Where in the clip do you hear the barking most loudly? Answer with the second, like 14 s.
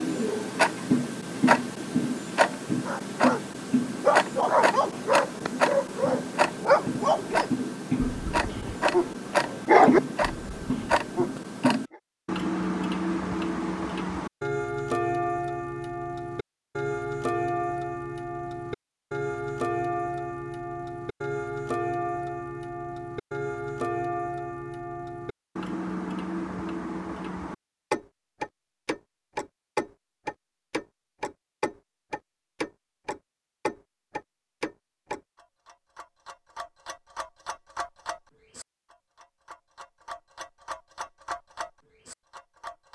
10 s.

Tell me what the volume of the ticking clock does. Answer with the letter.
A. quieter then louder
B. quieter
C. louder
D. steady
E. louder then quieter
B.